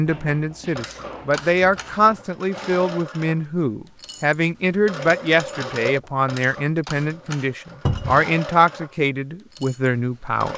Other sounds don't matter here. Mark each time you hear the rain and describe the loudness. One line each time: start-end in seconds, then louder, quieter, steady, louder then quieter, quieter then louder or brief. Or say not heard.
not heard.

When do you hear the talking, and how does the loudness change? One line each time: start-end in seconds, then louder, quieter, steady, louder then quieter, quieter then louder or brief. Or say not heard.
0.0-10.5 steady.